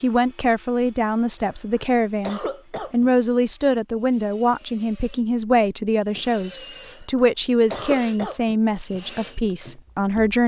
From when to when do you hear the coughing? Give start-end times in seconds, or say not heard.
1.4-3.1, 6.8-8.6.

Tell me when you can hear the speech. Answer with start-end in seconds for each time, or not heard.
0.0-10.4.